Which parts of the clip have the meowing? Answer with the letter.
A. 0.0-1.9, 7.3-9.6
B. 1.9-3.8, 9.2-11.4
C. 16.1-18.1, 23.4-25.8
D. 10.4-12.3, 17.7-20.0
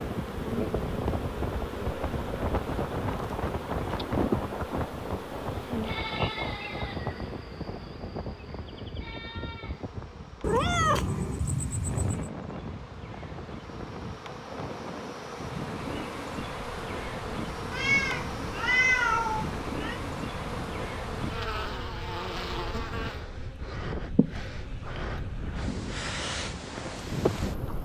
D.